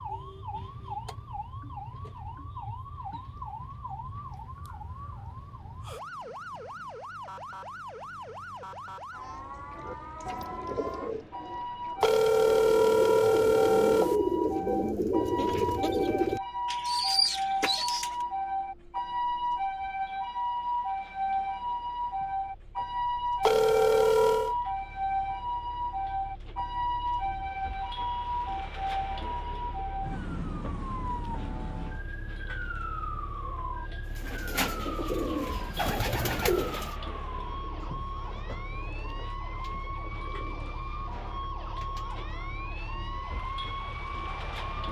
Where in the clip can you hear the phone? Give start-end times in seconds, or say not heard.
12.0-14.2, 23.4-24.6.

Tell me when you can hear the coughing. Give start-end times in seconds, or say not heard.
not heard.